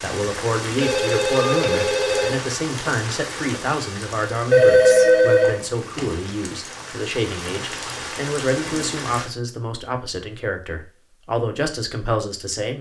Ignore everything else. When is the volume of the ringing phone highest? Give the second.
5 s.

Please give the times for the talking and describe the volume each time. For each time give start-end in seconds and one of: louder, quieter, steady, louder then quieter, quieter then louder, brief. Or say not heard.
0.0-12.7 steady.